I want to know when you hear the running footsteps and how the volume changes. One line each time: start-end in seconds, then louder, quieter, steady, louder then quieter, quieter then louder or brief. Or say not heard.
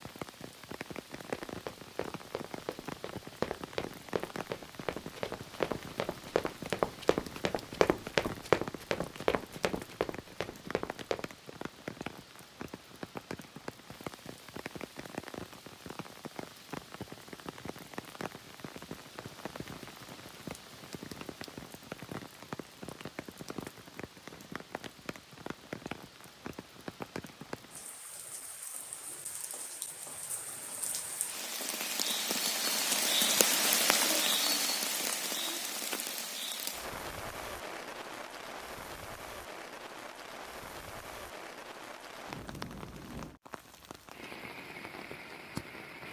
1.1-11.2 louder then quieter.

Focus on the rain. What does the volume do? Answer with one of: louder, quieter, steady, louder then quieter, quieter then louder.
louder then quieter.